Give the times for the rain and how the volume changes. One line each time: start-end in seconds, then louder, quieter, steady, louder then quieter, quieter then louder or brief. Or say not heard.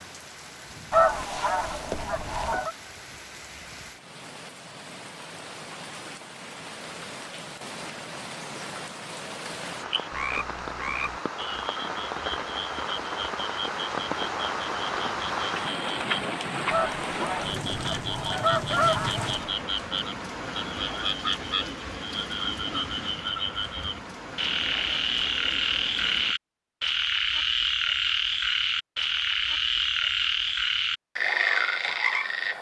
0.0-26.4 louder then quieter.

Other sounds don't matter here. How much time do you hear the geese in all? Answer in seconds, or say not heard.
5 s.